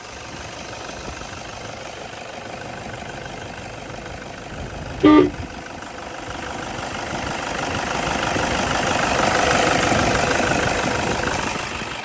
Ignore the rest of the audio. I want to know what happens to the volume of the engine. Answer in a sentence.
The loudness of the engine goes up.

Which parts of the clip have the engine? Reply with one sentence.
You can hear the engine from 0.0 to 12.0 s.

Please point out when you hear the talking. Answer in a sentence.
You can't hear the talking here.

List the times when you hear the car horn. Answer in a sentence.
You can hear the car horn from 4.5 to 5.3 s.